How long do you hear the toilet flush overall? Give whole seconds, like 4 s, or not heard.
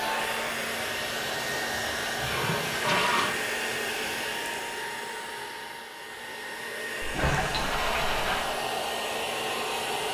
4 s.